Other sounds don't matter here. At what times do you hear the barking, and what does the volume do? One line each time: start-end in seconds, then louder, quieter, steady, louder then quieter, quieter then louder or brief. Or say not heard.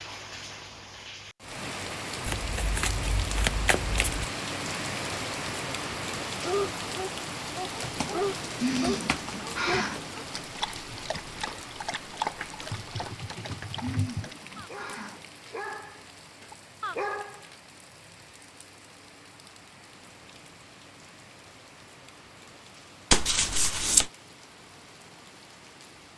6.4-17.5 quieter then louder.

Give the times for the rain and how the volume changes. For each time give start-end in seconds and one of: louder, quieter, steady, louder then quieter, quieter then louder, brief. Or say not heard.
0.0-26.1 quieter.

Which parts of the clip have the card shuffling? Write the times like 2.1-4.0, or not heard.
2.2-4.2, 12.2-13.8, 23.1-24.1.